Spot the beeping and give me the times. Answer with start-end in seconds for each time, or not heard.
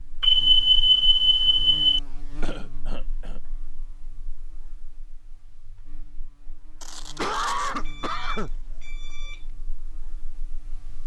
0.2-2.0, 6.8-9.4.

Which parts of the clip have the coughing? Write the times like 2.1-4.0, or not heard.
2.4-3.4, 7.2-8.6.